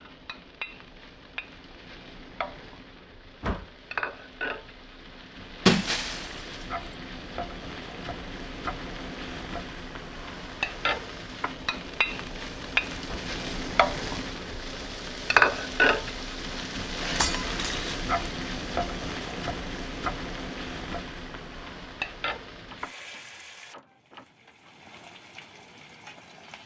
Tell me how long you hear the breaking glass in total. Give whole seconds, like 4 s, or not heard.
2 s.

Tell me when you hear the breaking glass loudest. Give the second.
6 s.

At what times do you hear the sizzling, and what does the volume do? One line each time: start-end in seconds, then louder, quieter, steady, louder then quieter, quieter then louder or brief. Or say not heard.
0.0-26.6 louder then quieter.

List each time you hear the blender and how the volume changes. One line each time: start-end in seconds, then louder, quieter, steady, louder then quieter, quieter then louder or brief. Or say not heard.
not heard.